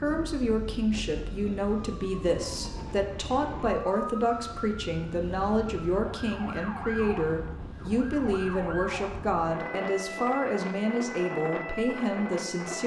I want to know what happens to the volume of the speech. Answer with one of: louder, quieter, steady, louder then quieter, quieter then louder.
steady.